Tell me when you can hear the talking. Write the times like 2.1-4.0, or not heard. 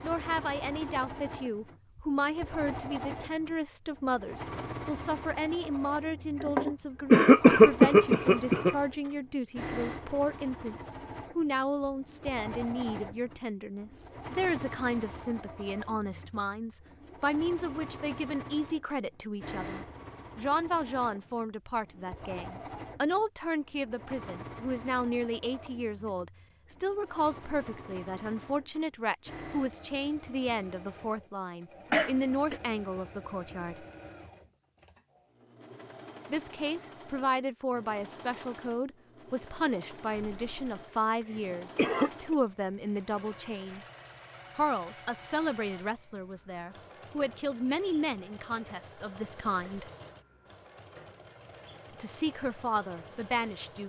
0.0-33.9, 36.3-43.8, 44.5-49.9, 52.0-53.8.